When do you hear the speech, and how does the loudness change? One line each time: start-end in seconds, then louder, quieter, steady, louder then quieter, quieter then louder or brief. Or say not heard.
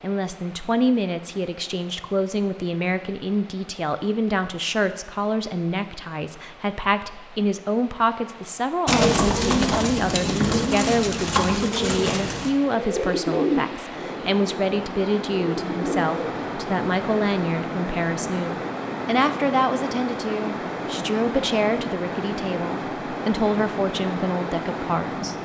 0.0-25.3 steady.